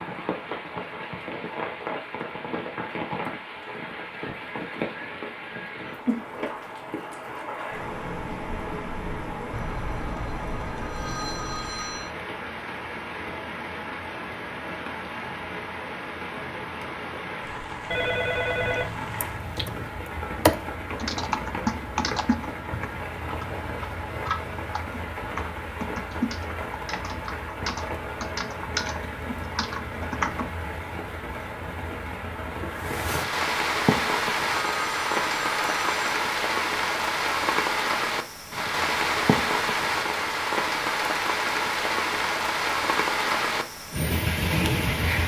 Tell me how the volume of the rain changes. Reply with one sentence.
The loudness of the rain goes up.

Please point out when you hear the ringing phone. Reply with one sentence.
You can hear the ringing phone from 9.5 to 12.1 s, from 17.9 to 19.9 s and from 34.5 to 36.1 s.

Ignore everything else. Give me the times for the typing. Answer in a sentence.
You can hear the typing from 19.2 to 19.7 s and from 20.4 to 30.5 s.